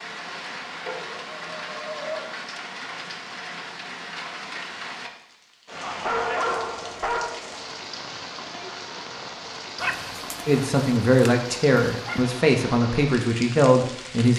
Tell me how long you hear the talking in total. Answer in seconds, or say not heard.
4 s.